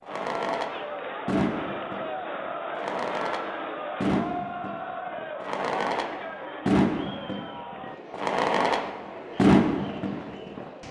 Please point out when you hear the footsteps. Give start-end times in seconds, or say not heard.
not heard.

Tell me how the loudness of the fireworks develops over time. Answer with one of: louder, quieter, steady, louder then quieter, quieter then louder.
louder.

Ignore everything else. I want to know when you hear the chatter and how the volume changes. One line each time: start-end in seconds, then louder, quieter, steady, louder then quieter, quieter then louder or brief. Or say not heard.
0.0-10.8 quieter.